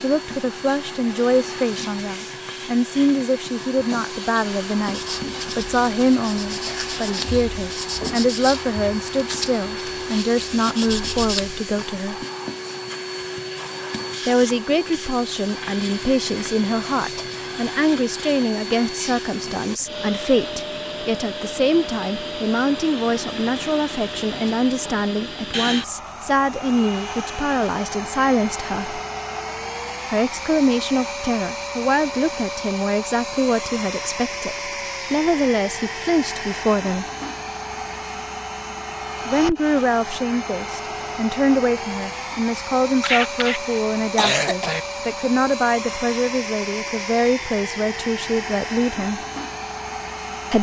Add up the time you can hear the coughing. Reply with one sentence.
The coughing can be heard for 2 seconds in total.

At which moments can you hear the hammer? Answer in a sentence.
The hammer can't be heard in this clip.